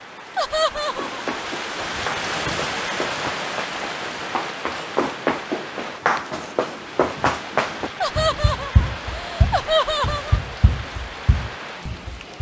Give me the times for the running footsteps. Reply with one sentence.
You can hear the running footsteps from 0.8 to 12.3 s.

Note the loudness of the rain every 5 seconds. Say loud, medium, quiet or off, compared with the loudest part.
loud, medium, medium.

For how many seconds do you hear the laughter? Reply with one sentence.
The laughter can be heard for 3 seconds in total.